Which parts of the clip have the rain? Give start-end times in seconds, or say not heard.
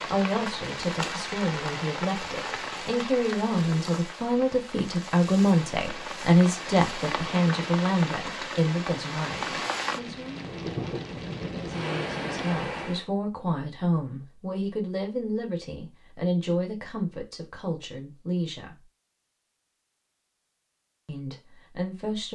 0.0-13.1.